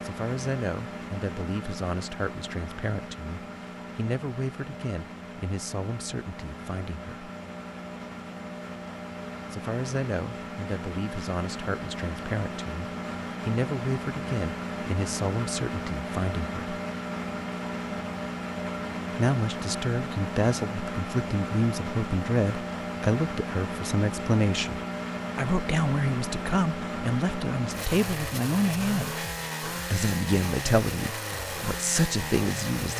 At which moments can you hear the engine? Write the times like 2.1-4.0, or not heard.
0.0-32.9.